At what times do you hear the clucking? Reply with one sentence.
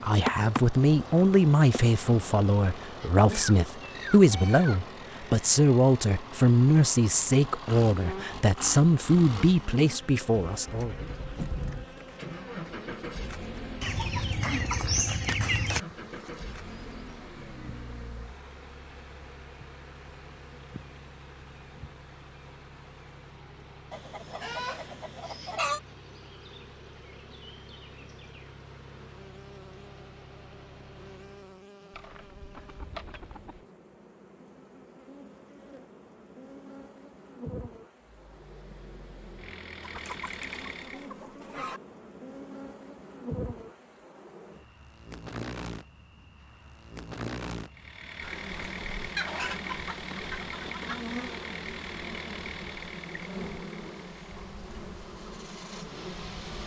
The clucking can be heard from 3.3 to 4.8 s, from 13.8 to 15.8 s, from 23.9 to 25.8 s, from 31.9 to 33.6 s, from 39.8 to 41.8 s and from 49.1 to 51.0 s.